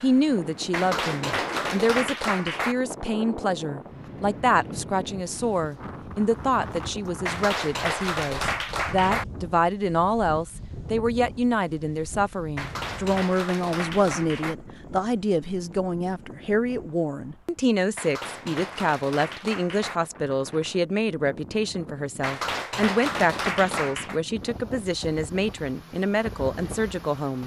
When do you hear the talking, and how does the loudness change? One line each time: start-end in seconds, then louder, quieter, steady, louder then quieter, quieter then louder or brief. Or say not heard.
0.0-27.4 steady.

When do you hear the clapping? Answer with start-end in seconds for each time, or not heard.
0.7-2.8, 7.2-9.2, 12.6-14.6, 17.9-20.0, 22.2-24.2.